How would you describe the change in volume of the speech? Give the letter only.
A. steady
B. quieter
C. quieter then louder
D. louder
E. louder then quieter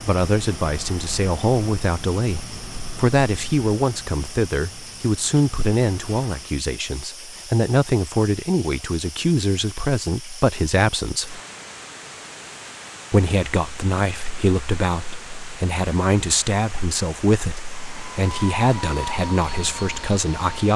A.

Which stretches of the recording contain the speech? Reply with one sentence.
You can hear the speech from 0.0 to 11.4 s and from 13.1 to 20.7 s.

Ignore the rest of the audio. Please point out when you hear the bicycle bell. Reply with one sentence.
The bicycle bell can't be heard in this clip.